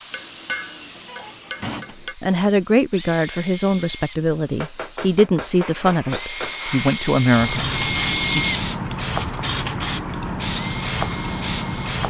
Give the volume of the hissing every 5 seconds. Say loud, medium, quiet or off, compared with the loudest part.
quiet, loud, loud.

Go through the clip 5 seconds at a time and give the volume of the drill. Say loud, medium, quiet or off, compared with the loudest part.
quiet, loud, medium.